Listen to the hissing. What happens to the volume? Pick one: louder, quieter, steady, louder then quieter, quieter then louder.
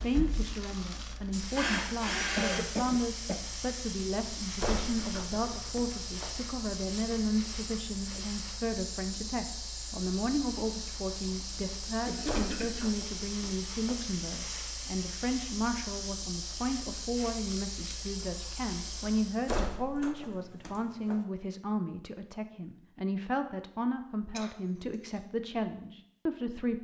steady.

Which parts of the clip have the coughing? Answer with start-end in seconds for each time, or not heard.
2.4-3.5, 12.1-12.8, 24.3-25.2.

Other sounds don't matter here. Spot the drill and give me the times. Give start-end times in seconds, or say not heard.
0.0-2.6.